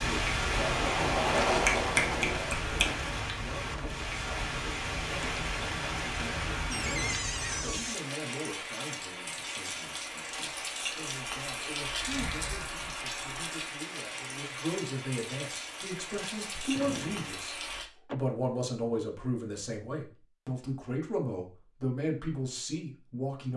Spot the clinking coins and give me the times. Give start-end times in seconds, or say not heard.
not heard.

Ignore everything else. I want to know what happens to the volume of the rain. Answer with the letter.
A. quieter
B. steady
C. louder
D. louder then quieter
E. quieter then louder
A.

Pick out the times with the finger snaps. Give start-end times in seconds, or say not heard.
1.6-3.0.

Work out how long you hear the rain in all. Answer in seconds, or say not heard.
18 s.